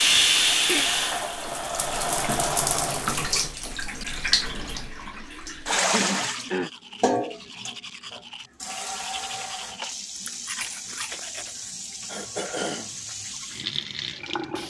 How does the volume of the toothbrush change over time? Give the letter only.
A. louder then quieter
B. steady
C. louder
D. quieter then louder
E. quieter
C.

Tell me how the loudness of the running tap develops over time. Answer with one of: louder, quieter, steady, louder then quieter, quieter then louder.
quieter.